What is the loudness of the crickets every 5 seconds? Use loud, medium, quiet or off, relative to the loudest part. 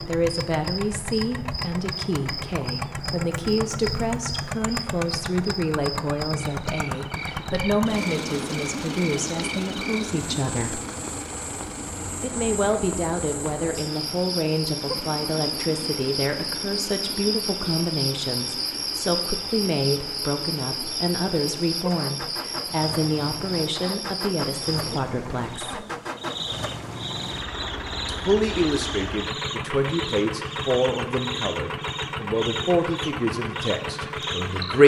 medium, medium, medium, loud, loud, medium, medium.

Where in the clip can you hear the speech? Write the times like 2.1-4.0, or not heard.
0.1-10.8, 12.2-25.9, 28.1-34.8.